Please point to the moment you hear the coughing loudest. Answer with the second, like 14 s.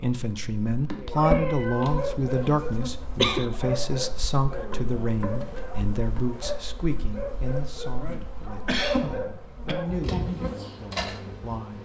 3 s.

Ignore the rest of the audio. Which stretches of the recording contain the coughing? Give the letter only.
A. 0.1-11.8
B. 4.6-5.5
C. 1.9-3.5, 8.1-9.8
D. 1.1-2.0
C.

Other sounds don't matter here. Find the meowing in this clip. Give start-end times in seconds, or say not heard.
1.1-2.0.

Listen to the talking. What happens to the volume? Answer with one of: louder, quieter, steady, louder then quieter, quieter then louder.
quieter.